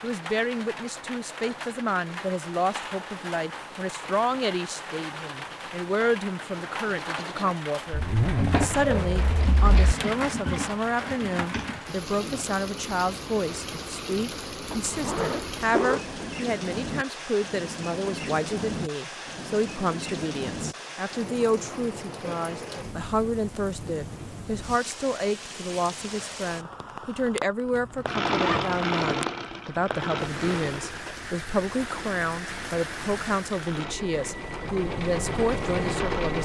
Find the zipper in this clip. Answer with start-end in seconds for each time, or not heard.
7.9-9.8, 14.7-16.1, 27.8-29.2.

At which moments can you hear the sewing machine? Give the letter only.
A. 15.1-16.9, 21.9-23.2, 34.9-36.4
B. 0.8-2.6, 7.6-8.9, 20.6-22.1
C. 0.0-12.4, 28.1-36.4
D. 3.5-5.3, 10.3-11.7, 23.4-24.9
C.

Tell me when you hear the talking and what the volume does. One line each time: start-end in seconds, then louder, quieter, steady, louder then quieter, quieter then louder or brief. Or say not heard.
0.0-36.4 steady.